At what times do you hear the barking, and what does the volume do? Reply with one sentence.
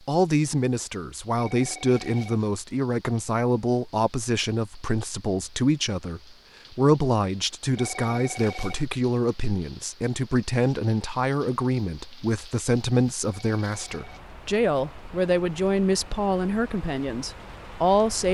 You can't hear the barking here.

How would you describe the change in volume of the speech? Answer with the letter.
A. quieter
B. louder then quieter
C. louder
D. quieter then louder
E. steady
E.